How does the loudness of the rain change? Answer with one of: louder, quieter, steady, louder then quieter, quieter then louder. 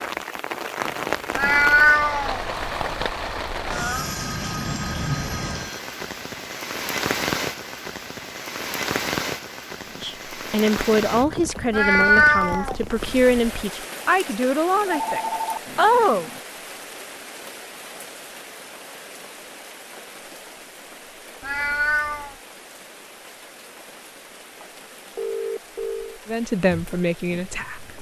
quieter.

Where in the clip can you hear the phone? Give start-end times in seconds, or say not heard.
3.9-5.8, 14.8-16.4, 25.1-26.2.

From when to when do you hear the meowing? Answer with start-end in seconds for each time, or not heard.
1.4-4.0, 11.7-13.7, 21.4-22.4.